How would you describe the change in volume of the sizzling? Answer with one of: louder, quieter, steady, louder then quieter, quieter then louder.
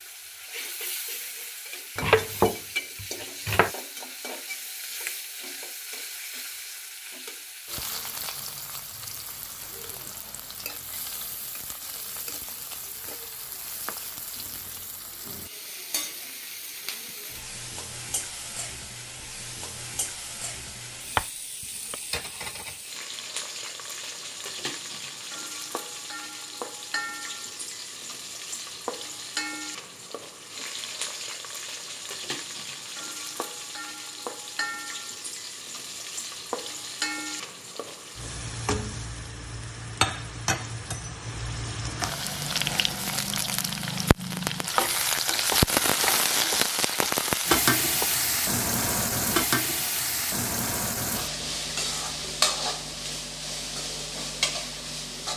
louder.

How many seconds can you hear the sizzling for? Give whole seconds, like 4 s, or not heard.
55 s.